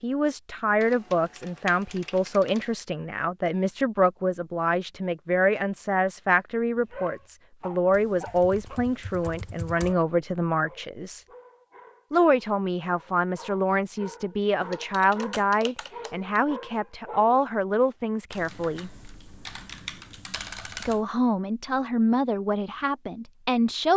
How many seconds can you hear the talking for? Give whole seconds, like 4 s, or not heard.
21 s.